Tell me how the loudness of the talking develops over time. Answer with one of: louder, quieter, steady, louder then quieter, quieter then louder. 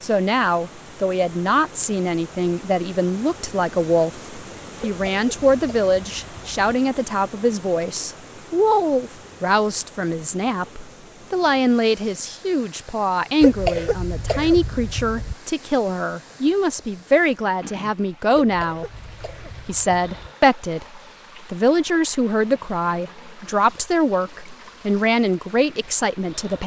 steady.